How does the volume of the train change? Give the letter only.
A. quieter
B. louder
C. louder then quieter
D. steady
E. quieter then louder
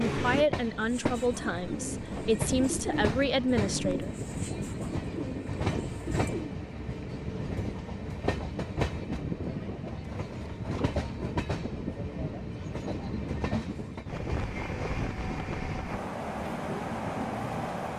D.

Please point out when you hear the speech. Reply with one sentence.
You can hear the speech from 0.1 to 4.2 s.